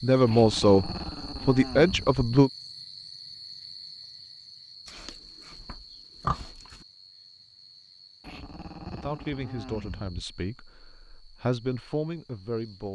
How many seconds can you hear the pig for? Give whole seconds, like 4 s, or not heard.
2 s.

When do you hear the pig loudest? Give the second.
6 s.